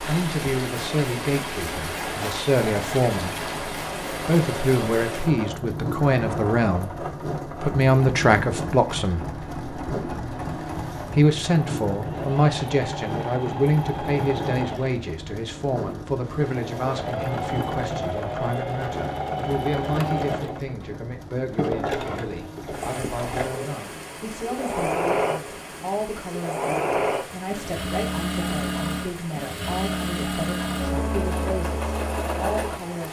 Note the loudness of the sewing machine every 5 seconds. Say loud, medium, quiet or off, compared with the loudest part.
medium, medium, medium, loud, loud, loud, loud.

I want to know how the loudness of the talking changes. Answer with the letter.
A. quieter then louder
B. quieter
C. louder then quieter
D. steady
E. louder
B.